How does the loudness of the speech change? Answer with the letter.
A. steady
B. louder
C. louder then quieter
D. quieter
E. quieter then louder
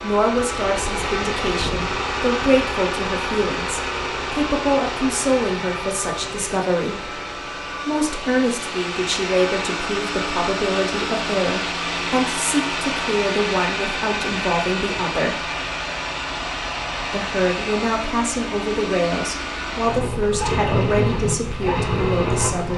A.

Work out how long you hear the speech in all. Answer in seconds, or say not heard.
21 s.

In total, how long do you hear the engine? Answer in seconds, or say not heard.
23 s.